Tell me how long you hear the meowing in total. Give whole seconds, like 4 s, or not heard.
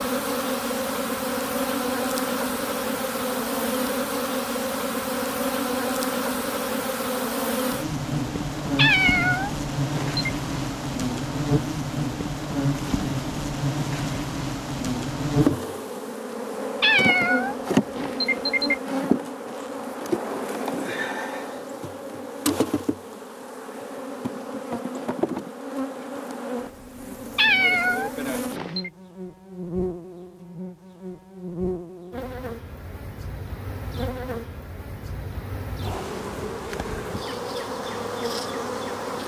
5 s.